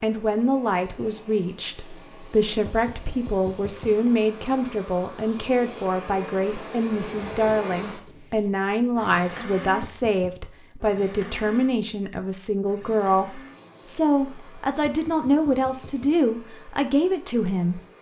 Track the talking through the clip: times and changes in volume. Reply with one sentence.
You can hear the talking from 0.0 to 17.8 s, at a steady volume.